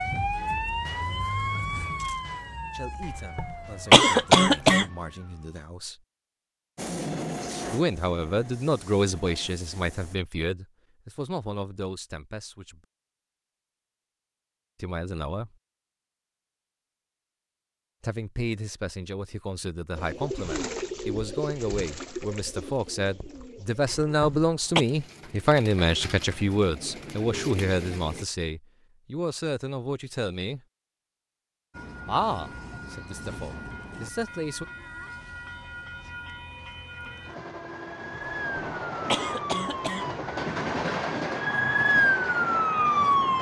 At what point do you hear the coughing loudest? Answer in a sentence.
The volume of the coughing peaks at 4 seconds.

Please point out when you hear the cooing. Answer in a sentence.
The cooing can be heard from 19.9 to 28.2 s.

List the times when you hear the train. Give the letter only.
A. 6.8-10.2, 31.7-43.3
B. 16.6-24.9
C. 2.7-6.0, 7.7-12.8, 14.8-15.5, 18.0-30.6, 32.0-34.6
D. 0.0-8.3
A.